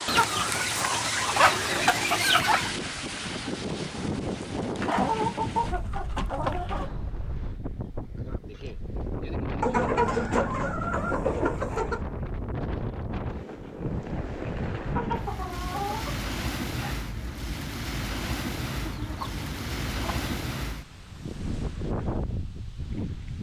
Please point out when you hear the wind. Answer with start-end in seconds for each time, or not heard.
0.0-23.3.